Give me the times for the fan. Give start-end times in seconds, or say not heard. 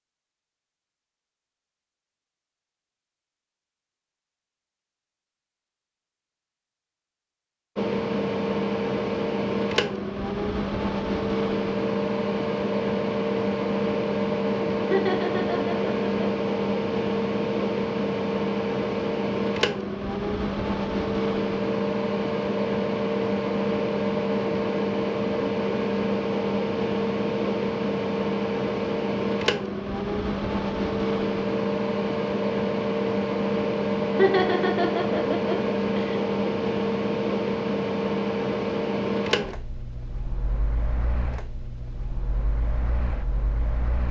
7.8-44.0.